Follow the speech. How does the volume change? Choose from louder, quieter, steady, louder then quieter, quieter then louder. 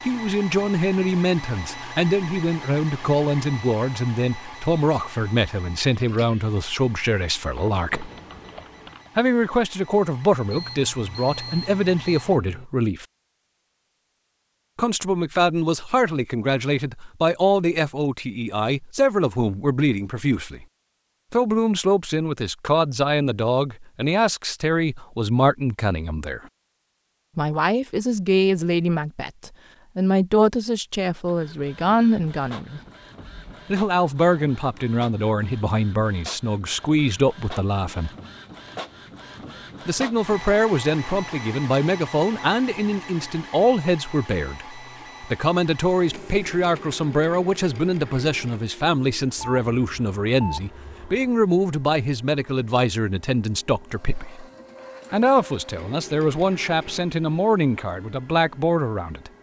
steady.